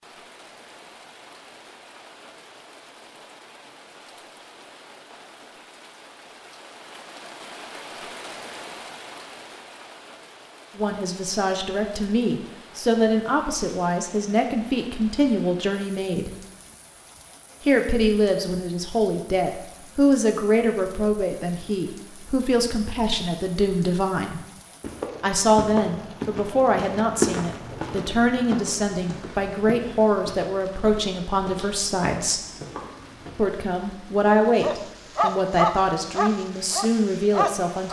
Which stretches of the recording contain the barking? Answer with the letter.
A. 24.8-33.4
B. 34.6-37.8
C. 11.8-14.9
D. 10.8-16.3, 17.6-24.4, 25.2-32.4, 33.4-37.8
B.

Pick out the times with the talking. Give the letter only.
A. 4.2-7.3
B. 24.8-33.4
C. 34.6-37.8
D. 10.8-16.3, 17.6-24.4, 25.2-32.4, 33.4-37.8
D.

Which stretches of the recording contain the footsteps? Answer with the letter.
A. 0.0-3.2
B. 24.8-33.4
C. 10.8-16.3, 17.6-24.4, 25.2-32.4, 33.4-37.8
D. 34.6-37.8
B.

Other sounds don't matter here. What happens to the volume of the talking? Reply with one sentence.
The loudness of the talking stays about the same.